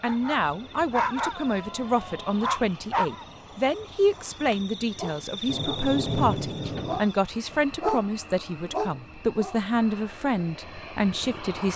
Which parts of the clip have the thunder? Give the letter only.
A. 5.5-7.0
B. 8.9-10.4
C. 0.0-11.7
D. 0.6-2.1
A.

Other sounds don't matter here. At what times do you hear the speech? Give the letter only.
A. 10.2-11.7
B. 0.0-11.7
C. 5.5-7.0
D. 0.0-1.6
B.